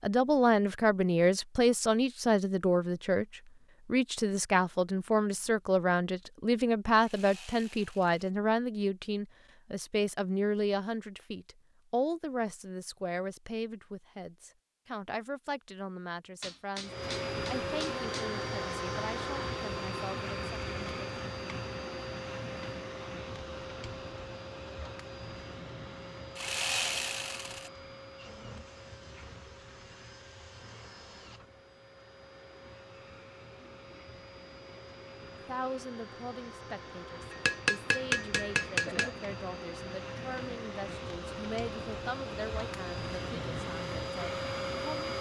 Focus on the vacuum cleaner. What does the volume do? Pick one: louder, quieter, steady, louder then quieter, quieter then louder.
quieter then louder.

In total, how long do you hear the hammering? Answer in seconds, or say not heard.
4 s.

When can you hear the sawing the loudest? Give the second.
27 s.